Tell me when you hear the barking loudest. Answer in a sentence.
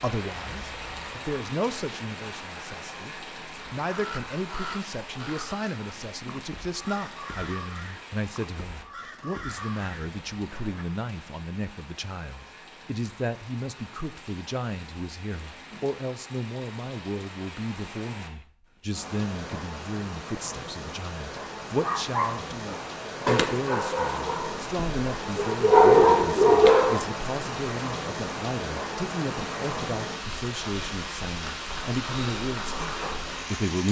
The volume of the barking peaks at 26 seconds.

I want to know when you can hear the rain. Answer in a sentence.
You can hear the rain from 0.0 to 33.8 s.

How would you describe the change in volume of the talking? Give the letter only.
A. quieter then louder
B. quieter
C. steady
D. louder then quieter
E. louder
C.